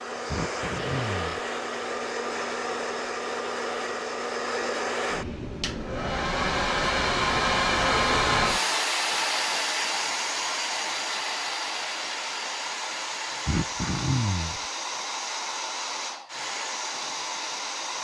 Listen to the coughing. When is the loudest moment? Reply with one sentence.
The volume of the coughing peaks at 14 seconds.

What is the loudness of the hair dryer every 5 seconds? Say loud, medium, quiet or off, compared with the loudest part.
medium, loud, medium, medium.